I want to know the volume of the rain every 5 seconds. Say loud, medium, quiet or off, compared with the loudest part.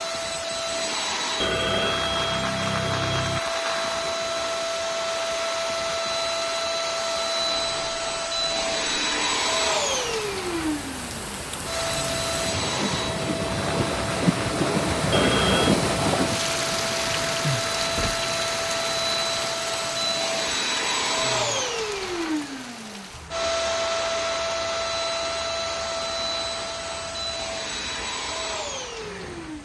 quiet, quiet, loud, loud, quiet, quiet.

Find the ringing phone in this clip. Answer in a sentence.
The ringing phone can be heard from 1.4 to 3.4 s and from 15.1 to 15.8 s.